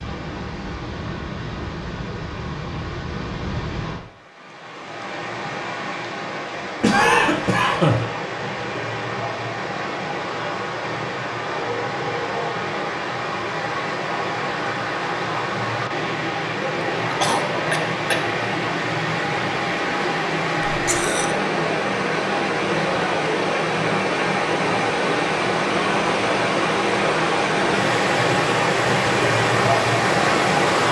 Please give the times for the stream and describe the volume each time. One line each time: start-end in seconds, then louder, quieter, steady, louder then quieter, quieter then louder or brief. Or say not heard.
0.0-30.8 louder.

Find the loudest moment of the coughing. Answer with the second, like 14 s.
7 s.